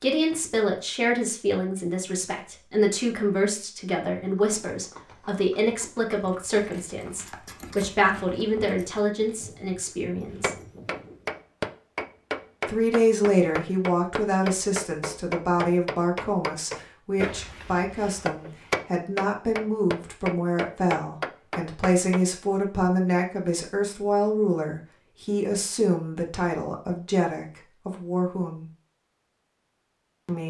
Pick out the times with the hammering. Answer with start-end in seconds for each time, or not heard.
10.4-22.2.